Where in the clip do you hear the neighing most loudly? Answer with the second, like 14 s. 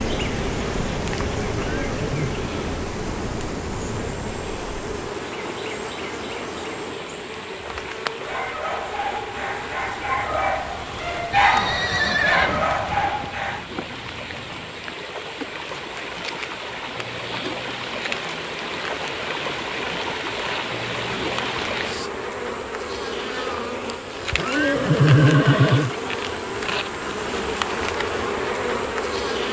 25 s.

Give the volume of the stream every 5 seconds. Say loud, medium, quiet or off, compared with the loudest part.
medium, medium, medium, loud, loud, off.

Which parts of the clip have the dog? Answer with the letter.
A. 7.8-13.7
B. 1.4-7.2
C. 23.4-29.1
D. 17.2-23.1
A.